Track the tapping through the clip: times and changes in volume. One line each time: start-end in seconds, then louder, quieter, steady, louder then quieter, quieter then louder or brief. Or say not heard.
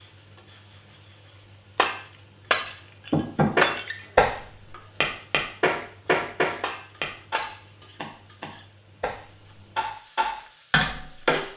3.1-11.5 quieter then louder.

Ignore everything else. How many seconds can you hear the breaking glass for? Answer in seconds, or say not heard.
3 s.